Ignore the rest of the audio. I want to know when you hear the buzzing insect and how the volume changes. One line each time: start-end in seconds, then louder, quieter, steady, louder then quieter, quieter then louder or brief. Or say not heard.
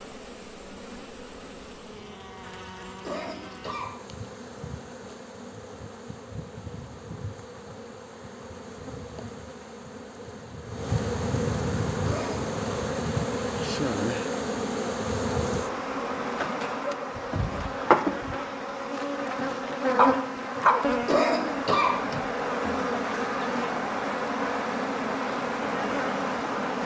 0.0-26.8 louder.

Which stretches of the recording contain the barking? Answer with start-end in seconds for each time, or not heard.
19.9-20.9.